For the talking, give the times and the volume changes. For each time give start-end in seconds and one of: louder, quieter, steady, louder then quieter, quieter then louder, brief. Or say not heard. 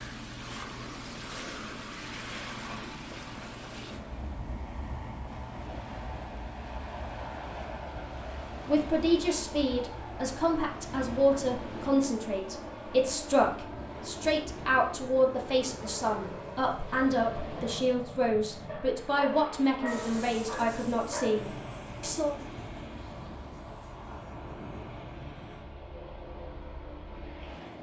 8.7-22.4 steady.